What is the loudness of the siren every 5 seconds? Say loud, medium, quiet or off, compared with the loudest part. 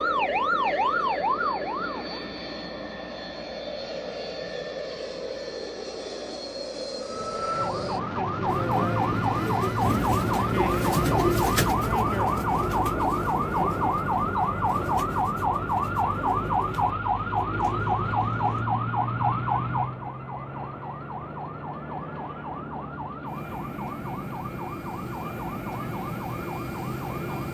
loud, loud, loud, loud, medium, medium.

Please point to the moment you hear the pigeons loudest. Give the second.
11 s.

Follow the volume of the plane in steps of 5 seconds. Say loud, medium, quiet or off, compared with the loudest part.
loud, loud, loud, medium, medium, loud.